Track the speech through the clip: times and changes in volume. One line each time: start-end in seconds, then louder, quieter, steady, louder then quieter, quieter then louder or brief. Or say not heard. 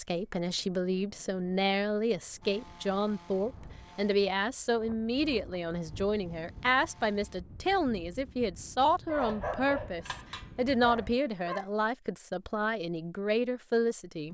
0.0-14.2 steady.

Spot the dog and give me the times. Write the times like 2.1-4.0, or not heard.
9.1-11.7.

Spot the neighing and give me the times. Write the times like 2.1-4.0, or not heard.
not heard.